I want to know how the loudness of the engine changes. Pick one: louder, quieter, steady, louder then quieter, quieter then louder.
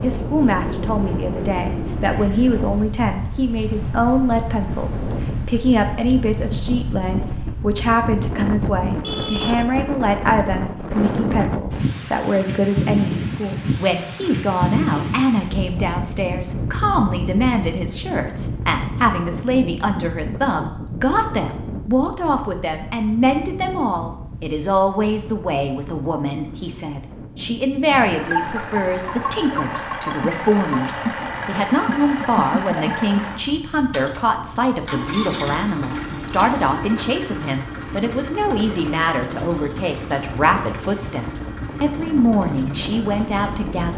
quieter.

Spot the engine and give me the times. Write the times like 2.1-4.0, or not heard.
27.9-43.9.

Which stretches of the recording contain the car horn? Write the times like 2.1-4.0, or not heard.
9.0-9.7.